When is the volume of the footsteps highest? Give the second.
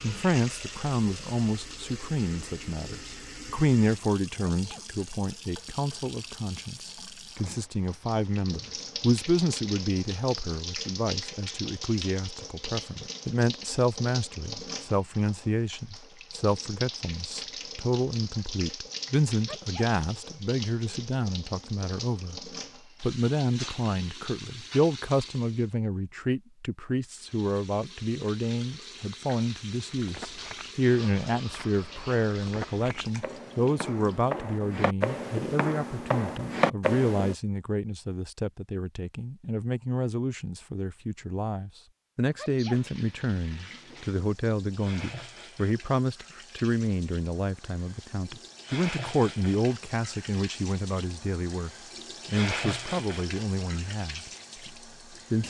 37 s.